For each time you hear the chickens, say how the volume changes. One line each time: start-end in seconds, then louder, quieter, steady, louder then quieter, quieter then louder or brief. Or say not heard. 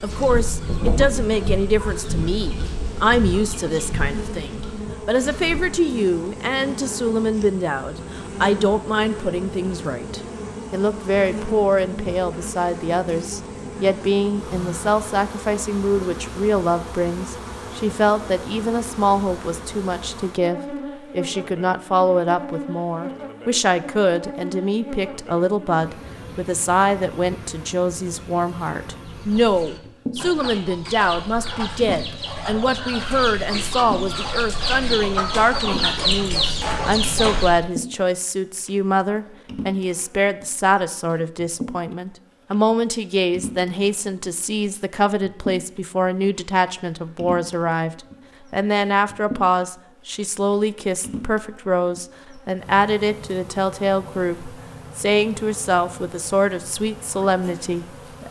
0.0-5.8 quieter
29.0-37.6 louder.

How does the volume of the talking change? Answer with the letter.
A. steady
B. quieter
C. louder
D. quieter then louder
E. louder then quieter
A.